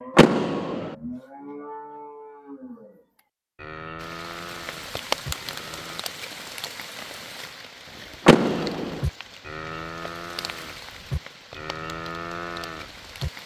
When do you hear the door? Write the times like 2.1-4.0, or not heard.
0.1-0.9, 8.2-9.1.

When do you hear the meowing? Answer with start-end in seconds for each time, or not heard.
not heard.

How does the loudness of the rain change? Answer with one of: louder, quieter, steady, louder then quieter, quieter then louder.
quieter.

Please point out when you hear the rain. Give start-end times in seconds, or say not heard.
4.0-13.4.